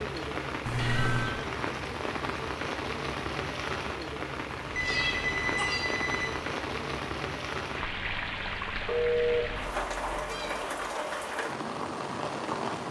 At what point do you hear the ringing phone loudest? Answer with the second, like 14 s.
9 s.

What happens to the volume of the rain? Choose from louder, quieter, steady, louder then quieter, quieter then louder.
steady.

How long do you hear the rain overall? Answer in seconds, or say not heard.
13 s.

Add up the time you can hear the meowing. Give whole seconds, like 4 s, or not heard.
3 s.